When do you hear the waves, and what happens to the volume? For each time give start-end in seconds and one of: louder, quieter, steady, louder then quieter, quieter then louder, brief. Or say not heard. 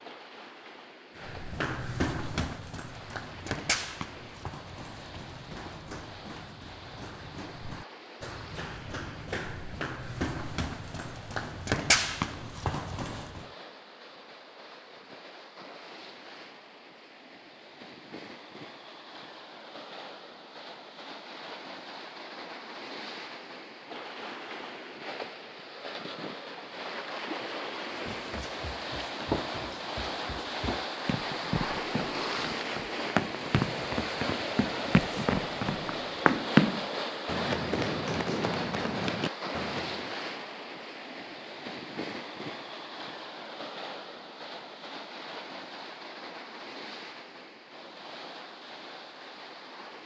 0.0-50.0 louder then quieter.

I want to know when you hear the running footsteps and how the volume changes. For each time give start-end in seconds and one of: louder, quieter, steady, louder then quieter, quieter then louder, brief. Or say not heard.
1.1-13.4 quieter then louder
27.9-40.1 louder then quieter.